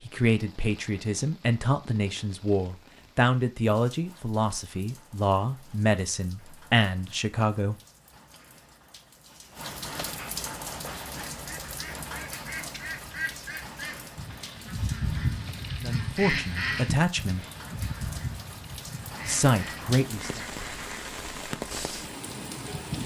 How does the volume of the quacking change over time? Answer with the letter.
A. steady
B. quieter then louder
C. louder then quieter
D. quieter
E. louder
C.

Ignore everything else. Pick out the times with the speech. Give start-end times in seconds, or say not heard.
0.0-7.8, 15.8-17.4, 19.2-20.4.